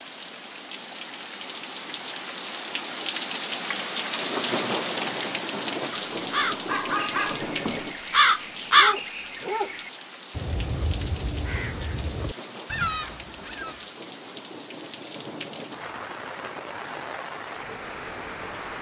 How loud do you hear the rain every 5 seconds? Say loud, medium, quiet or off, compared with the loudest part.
loud, loud, medium, medium.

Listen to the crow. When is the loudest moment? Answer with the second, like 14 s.
9 s.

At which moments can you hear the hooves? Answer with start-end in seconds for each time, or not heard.
not heard.